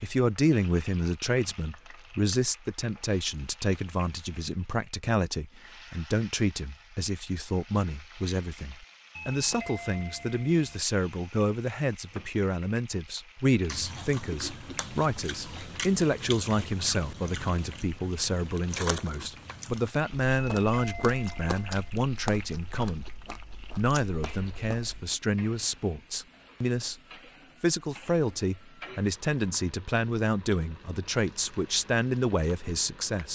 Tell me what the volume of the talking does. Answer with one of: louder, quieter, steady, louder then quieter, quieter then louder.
steady.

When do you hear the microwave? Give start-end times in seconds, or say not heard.
not heard.